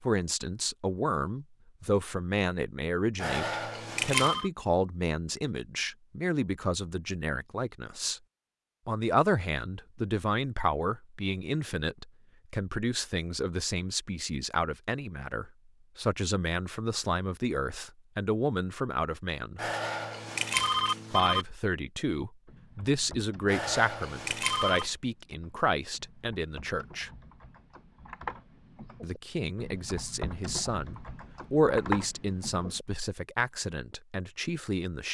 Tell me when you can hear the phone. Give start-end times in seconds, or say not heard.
3.1-4.5, 19.6-21.4, 23.4-24.9.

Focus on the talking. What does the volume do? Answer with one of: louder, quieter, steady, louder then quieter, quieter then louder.
steady.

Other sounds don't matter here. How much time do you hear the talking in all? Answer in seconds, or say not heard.
31 s.